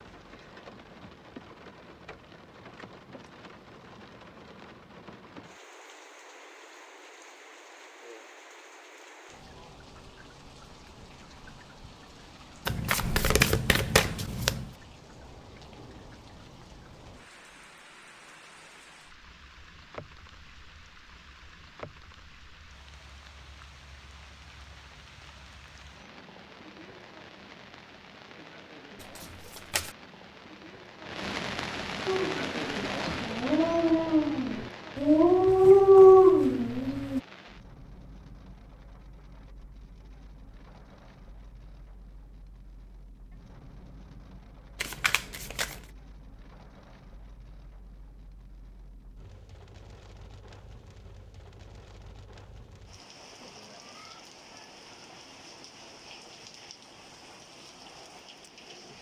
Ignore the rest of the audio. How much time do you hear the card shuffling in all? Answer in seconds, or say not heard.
4 s.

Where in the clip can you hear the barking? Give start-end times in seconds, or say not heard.
32.0-37.2.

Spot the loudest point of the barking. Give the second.
36 s.